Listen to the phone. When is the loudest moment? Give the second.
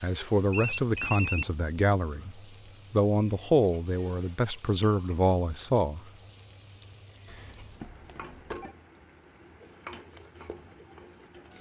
1 s.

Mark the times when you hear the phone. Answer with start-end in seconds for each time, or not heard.
0.5-1.6, 7.2-8.8.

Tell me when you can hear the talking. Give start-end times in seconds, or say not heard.
0.0-6.0.